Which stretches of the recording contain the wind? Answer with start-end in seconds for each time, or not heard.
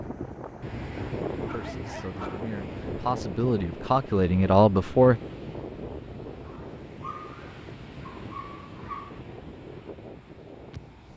0.0-11.1.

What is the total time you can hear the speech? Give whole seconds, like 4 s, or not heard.
4 s.